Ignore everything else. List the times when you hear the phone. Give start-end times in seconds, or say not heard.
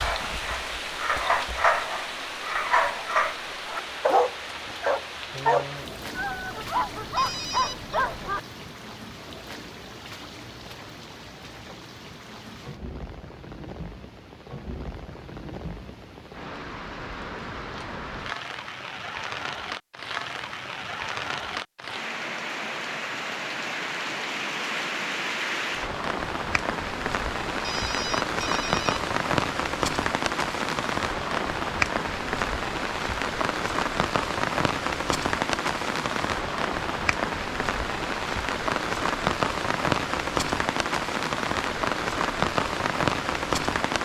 7.2-8.0, 27.6-29.1.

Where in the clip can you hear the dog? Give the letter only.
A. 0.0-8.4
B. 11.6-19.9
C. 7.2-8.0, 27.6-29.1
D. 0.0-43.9
A.